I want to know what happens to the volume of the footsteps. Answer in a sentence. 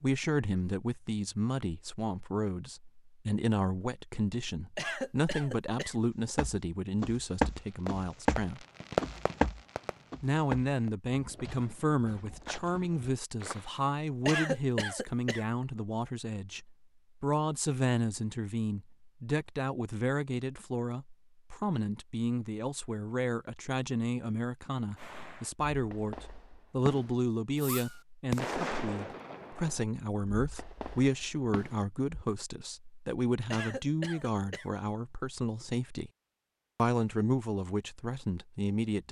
The volume of the footsteps goes down.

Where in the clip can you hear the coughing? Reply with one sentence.
The coughing can be heard from 4.8 to 6.0 s, from 14.2 to 15.4 s and from 33.5 to 34.7 s.